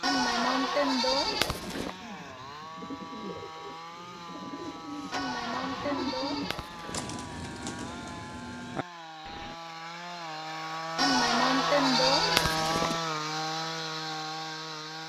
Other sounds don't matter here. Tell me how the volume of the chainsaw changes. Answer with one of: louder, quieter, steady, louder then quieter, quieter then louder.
louder.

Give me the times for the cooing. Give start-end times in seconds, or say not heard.
1.1-9.6.